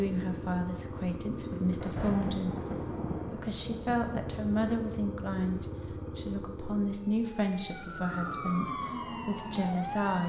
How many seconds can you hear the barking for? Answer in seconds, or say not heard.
not heard.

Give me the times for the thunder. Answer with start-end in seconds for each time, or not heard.
1.5-4.3.